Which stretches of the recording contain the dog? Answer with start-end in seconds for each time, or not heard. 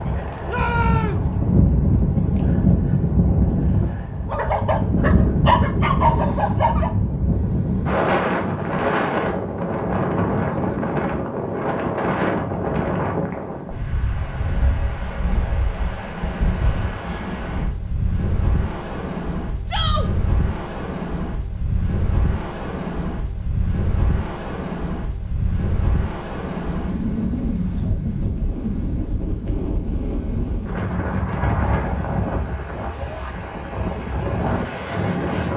4.2-6.9.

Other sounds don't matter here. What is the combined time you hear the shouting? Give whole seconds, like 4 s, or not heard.
2 s.